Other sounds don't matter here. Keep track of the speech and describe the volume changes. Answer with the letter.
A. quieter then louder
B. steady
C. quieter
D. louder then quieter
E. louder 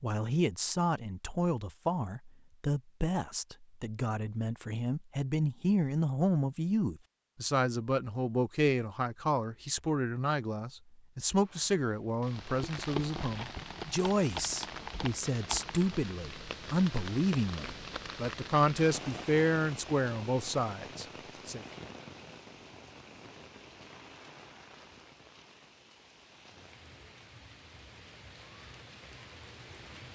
B.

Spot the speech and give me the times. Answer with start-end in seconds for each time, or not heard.
0.0-21.6.